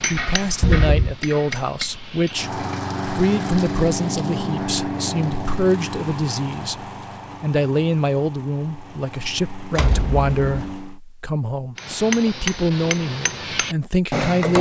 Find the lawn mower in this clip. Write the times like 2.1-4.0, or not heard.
2.3-11.0.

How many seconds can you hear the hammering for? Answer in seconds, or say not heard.
5 s.